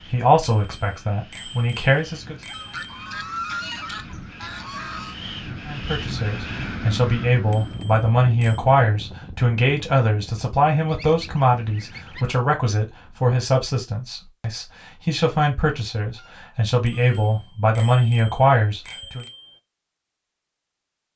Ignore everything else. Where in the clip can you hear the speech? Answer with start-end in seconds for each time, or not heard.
0.1-2.4, 5.7-19.2.